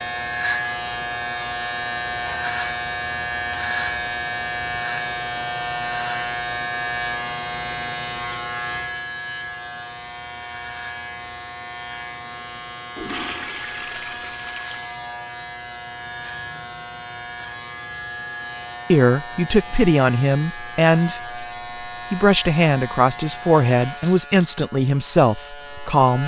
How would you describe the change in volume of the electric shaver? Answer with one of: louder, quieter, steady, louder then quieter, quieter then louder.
quieter.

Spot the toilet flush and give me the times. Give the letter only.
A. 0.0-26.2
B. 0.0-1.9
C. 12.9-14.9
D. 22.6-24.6
C.